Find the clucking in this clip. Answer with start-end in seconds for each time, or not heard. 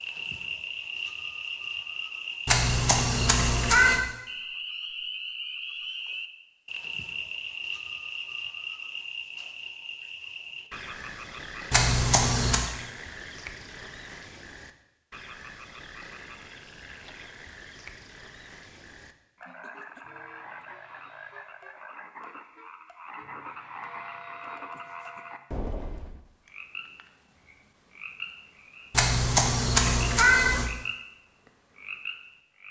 not heard.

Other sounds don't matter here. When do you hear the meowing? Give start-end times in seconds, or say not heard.
2.5-4.0, 11.7-12.7, 28.9-30.7.